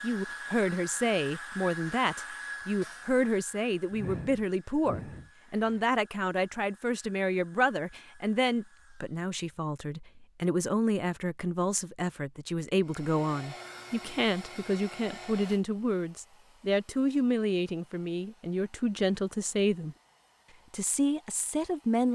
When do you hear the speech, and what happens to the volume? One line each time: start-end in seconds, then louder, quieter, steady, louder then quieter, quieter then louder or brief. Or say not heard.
0.0-19.9 steady
20.7-22.1 brief.